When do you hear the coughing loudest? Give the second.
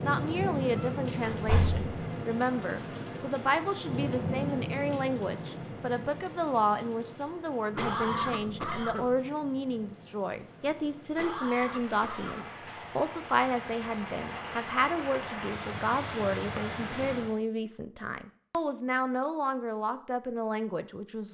8 s.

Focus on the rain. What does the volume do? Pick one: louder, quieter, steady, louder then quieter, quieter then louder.
quieter then louder.